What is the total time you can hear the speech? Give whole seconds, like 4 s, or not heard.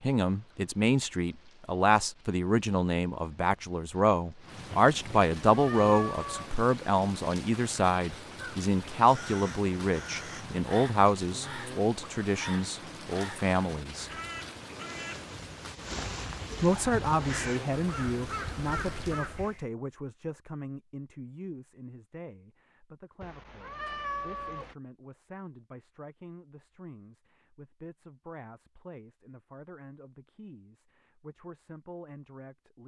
30 s.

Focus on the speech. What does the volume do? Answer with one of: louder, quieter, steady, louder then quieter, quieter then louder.
quieter.